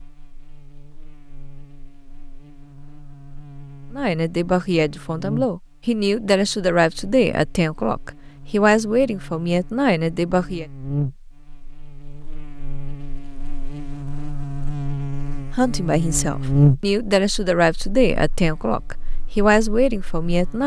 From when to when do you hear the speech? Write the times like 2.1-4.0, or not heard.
3.9-10.7, 15.6-20.6.